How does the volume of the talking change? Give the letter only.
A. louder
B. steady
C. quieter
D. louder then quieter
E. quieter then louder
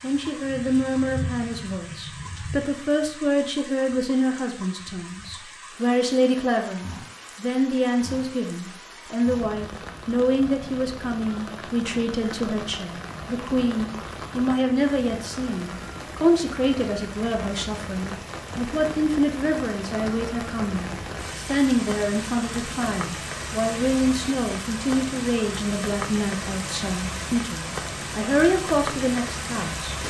B.